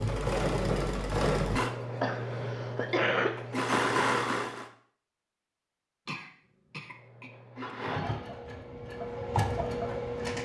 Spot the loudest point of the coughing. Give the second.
3 s.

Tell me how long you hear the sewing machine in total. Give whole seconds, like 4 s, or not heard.
8 s.